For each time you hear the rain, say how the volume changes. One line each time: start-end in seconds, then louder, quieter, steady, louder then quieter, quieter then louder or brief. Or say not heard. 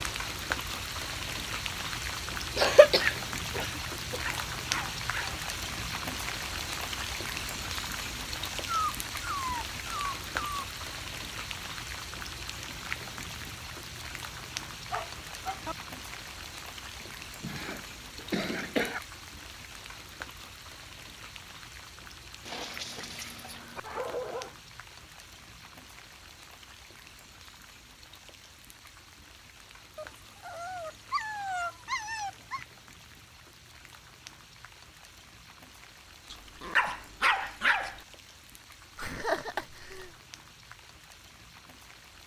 0.0-42.2 quieter.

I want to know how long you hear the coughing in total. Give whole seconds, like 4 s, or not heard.
5 s.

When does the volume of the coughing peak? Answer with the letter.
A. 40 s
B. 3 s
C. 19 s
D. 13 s
B.